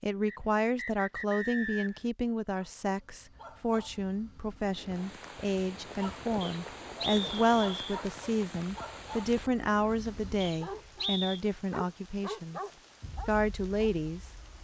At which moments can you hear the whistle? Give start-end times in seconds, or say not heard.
0.2-2.0, 6.4-8.0, 10.4-11.4.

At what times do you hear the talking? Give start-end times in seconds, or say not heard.
0.0-12.6, 13.2-14.3.